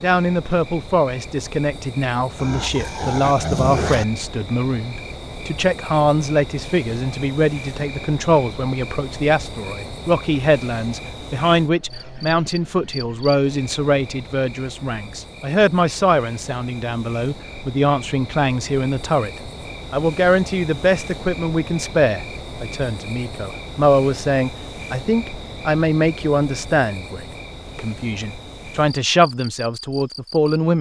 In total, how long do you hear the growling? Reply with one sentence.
The growling can be heard for 2 seconds in total.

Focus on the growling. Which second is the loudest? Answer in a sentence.
The volume of the growling peaks at 4 seconds.